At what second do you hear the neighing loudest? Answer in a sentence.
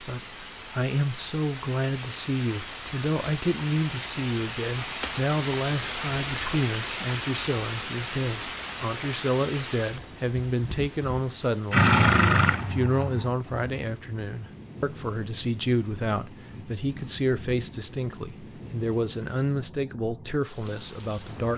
The loudest moment of the neighing is at 12 seconds.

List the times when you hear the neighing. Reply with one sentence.
The neighing can be heard from 11.7 to 13.3 s.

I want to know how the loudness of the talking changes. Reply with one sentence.
The volume of the talking stays about the same.